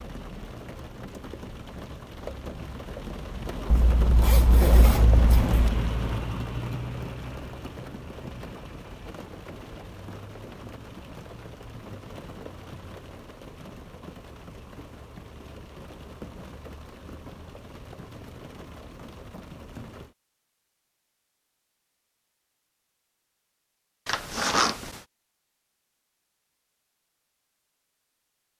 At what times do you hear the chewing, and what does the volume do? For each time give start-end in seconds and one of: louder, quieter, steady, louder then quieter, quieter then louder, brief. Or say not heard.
not heard.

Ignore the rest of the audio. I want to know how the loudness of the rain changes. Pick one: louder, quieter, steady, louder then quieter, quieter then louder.
louder then quieter.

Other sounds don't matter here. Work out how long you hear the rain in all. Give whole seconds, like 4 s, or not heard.
20 s.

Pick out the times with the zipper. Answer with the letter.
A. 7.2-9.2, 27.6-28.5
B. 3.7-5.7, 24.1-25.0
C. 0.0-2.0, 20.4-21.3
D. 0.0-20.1
B.